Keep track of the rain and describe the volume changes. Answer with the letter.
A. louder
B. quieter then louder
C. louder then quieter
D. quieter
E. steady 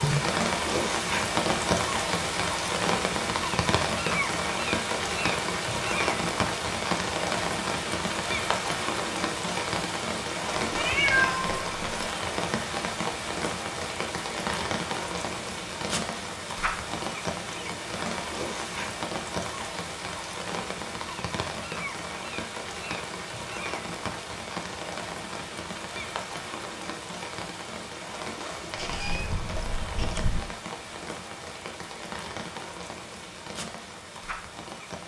D.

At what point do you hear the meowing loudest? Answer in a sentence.
The volume of the meowing peaks at 11 seconds.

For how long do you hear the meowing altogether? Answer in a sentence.
The meowing can be heard for 3 seconds in total.